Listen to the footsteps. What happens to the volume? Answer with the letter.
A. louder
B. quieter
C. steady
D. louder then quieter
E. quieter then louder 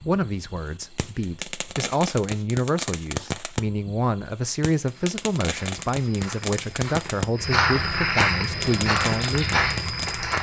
A.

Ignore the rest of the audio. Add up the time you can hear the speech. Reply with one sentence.
You can hear the speech for 10 seconds altogether.